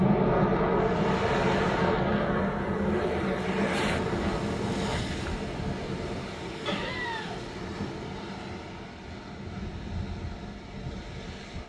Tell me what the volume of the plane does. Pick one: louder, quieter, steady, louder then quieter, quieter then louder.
quieter.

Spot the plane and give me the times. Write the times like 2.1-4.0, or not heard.
0.0-5.0.